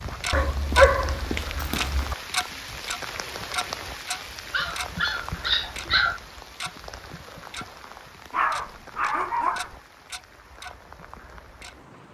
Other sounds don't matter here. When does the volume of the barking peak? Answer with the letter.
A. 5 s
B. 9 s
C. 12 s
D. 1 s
D.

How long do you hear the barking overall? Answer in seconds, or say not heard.
5 s.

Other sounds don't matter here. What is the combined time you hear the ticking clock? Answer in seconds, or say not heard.
11 s.